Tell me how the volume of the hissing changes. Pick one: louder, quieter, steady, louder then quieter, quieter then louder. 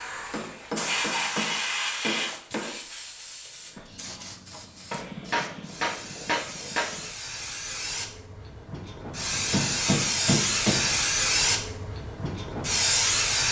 quieter then louder.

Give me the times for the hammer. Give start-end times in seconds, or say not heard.
0.3-2.8, 4.9-7.1, 9.5-10.9.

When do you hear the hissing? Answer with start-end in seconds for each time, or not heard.
0.0-13.4.